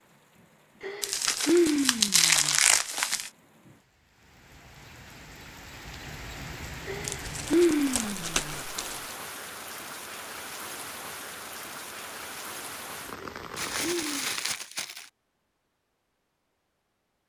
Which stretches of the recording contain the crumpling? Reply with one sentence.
The crumpling can be heard from 1.0 to 3.3 s, from 7.0 to 9.2 s and from 13.6 to 15.1 s.